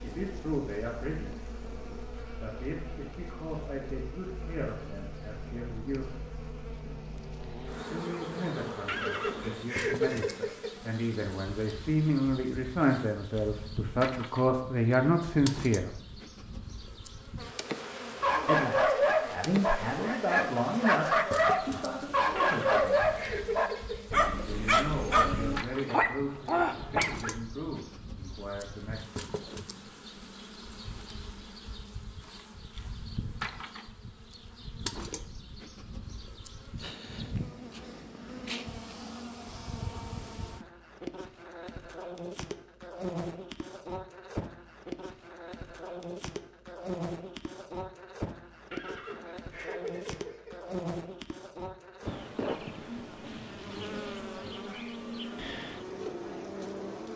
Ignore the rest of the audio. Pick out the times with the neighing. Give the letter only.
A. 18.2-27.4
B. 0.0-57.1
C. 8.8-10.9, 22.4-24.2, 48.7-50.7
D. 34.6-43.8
C.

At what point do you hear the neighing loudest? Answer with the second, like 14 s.
10 s.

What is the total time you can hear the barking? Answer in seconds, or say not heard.
9 s.